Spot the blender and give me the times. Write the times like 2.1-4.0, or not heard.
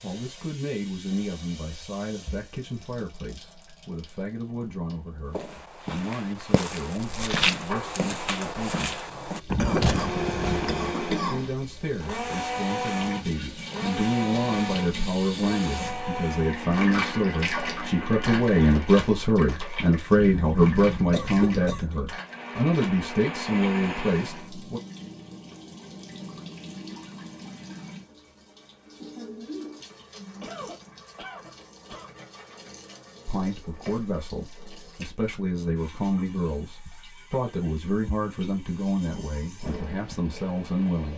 9.8-19.1, 22.2-24.5.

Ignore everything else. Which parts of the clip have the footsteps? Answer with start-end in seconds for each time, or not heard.
5.3-10.8.